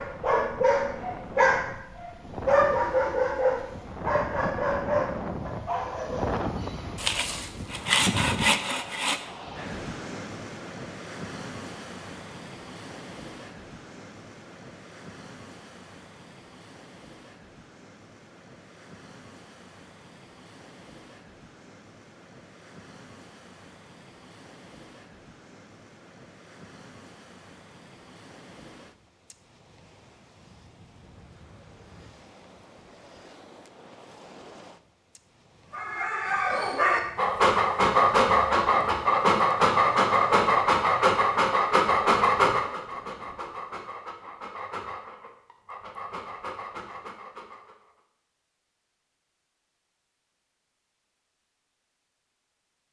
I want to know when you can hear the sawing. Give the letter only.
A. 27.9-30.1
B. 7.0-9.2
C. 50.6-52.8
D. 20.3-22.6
B.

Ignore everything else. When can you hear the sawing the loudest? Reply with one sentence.
The loudest moment of the sawing is at 8 seconds.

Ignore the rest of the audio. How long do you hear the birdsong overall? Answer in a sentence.
You can't hear the birdsong here.